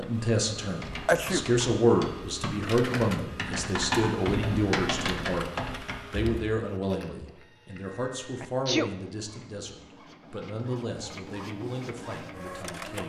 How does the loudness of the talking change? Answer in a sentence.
The volume of the talking goes down.